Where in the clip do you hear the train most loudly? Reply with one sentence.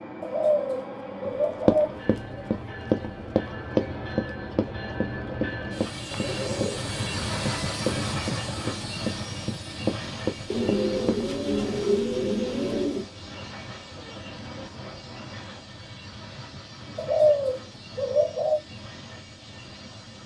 The volume of the train peaks at 8 seconds.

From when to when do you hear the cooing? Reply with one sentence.
You can hear the cooing from 0.2 to 1.9 s, from 6.1 to 8.1 s, from 10.5 to 13.1 s and from 16.9 to 18.6 s.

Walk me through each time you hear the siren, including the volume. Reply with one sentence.
The siren can't be heard in this clip.